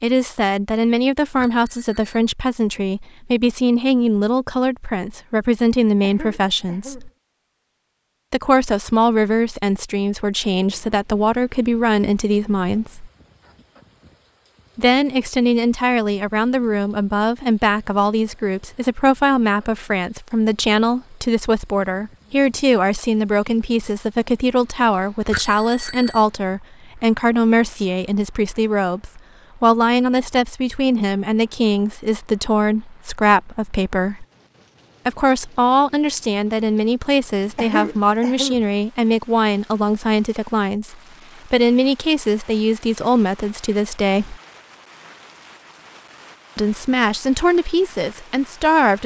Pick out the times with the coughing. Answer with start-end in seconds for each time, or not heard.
6.0-7.1, 37.5-38.6.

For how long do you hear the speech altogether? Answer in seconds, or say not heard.
43 s.